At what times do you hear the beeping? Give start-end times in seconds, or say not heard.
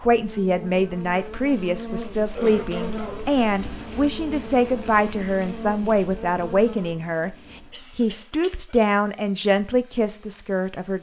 not heard.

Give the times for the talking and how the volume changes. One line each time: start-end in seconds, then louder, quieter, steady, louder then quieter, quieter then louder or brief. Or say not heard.
0.0-10.9 steady.